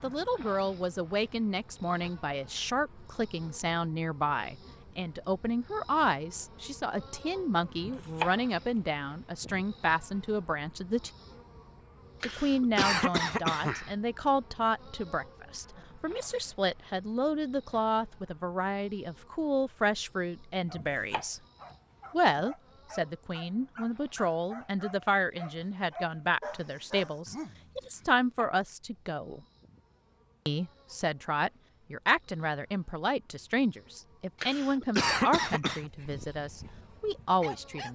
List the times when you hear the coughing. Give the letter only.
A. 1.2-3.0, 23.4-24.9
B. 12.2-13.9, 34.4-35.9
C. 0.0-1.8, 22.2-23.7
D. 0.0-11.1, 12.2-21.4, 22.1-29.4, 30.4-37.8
B.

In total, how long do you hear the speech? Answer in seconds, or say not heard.
35 s.